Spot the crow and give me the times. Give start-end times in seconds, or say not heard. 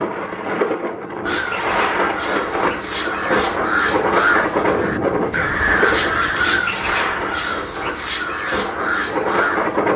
1.2-9.8.